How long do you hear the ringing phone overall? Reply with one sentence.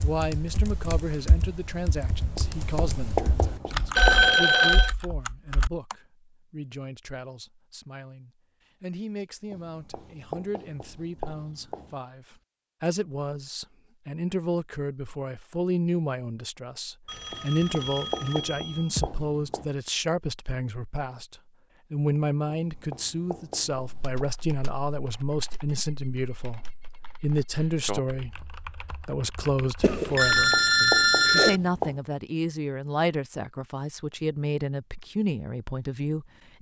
You can hear the ringing phone for 5 seconds altogether.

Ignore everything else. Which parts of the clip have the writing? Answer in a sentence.
You can hear the writing from 2.4 to 4.3 s, from 9.5 to 11.9 s, from 17.3 to 19.7 s, from 22.6 to 24.2 s and from 30.4 to 32.0 s.